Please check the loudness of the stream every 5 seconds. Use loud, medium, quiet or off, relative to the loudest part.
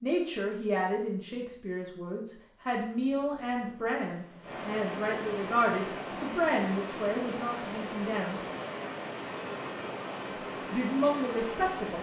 medium, loud, loud.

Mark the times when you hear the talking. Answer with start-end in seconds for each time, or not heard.
0.0-8.4, 10.7-11.9.